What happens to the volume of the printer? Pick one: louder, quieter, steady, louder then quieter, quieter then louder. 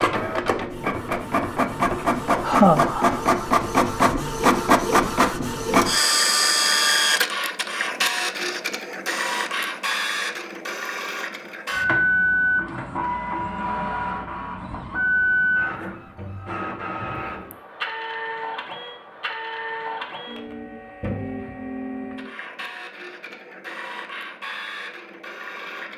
quieter.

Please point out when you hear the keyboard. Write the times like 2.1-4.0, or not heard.
not heard.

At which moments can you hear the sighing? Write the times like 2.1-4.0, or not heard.
2.0-3.2.